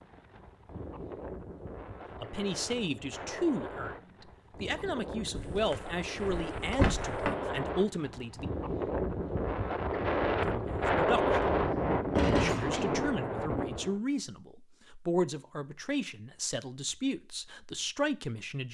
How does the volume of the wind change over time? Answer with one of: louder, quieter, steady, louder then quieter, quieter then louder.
louder.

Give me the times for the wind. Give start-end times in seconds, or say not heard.
0.0-14.0.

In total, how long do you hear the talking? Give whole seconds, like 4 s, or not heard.
13 s.